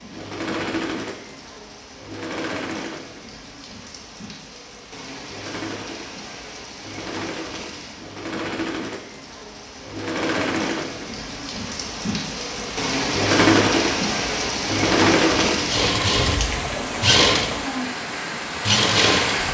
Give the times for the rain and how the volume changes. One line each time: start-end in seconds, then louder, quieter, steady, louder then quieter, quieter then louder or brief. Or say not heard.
0.0-19.4 louder.